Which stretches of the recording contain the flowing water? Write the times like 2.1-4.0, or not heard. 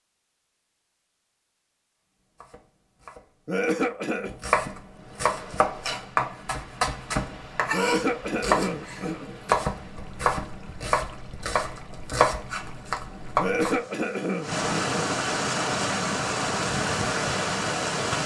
4.9-18.2.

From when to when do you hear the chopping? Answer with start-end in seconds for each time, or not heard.
2.4-13.8.